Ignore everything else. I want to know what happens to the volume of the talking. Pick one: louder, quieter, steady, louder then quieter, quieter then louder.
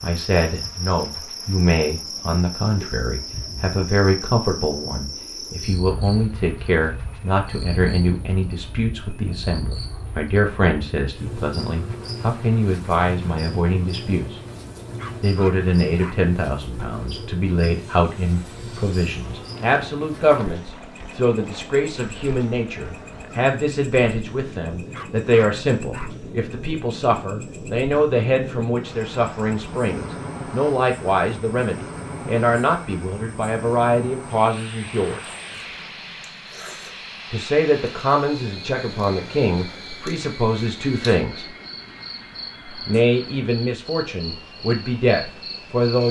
steady.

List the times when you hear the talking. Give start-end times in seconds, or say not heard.
0.0-14.4, 15.2-35.3, 37.3-41.5, 42.6-46.0.